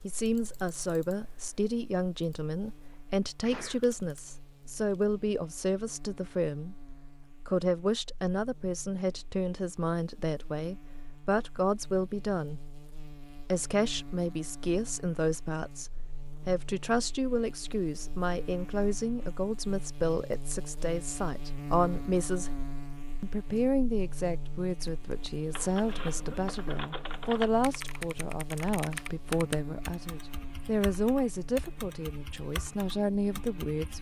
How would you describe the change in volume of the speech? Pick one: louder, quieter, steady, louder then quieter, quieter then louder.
steady.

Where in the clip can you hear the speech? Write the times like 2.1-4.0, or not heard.
0.0-6.8, 7.5-12.6, 13.5-22.5, 23.2-33.9.